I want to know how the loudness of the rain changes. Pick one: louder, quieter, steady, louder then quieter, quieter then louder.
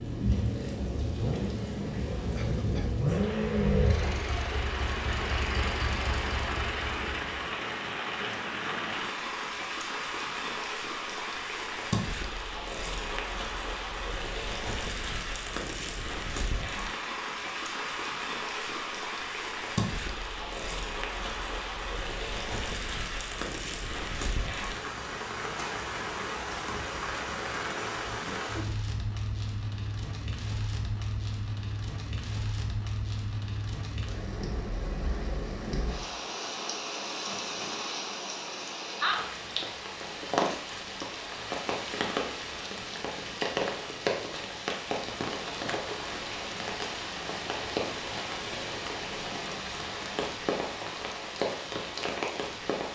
steady.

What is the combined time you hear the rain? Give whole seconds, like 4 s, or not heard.
53 s.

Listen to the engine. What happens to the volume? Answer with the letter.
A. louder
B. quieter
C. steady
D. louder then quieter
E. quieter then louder
D.